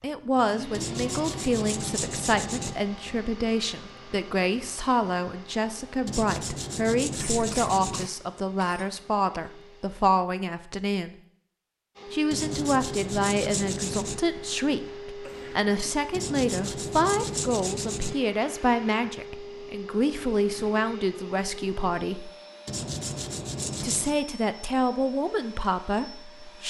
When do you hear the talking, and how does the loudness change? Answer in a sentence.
The talking can be heard from 0.0 to 11.2 s, at a steady volume; from 12.1 to 22.3 s, at a steady volume; and briefly from 23.8 to 26.6 s.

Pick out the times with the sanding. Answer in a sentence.
You can hear the sanding from 0.7 to 2.8 s, from 6.0 to 8.1 s, from 12.3 to 14.2 s, from 16.1 to 18.1 s and from 22.6 to 24.2 s.